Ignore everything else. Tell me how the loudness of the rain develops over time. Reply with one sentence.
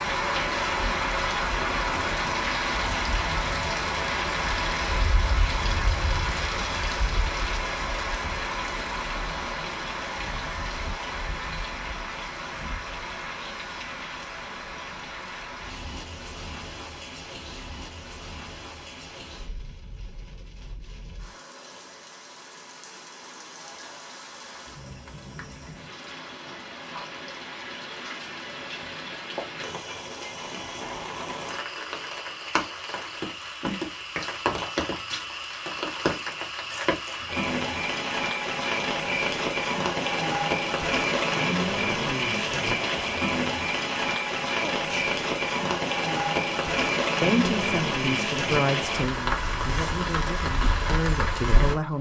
The loudness of the rain goes down, then up.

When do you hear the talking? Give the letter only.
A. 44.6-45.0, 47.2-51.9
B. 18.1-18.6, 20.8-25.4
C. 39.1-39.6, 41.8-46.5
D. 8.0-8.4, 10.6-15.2
A.